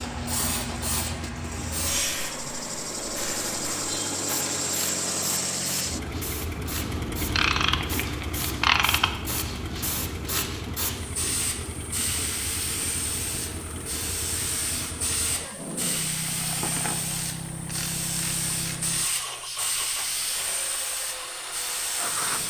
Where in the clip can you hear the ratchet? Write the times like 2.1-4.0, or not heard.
7.2-9.1, 16.2-19.0.